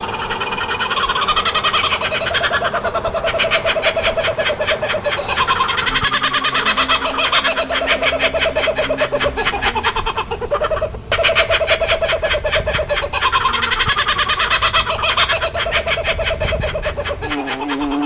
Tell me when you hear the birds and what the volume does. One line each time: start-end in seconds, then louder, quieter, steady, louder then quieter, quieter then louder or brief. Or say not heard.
0.0-18.0 steady.